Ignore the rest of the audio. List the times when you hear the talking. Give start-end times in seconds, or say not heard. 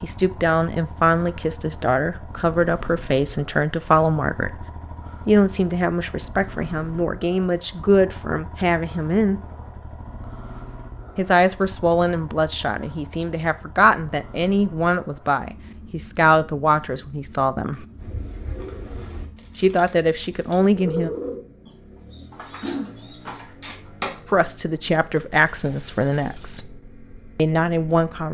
0.0-4.6, 5.2-9.4, 11.2-17.9, 19.6-21.1, 24.3-26.8, 27.4-28.2.